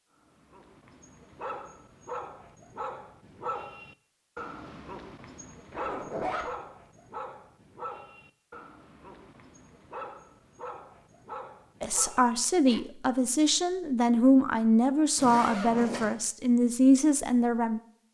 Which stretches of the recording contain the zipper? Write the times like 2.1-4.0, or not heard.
5.7-6.5, 15.2-16.1.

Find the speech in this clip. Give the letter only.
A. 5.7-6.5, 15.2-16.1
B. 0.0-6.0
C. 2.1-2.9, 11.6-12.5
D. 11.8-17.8
D.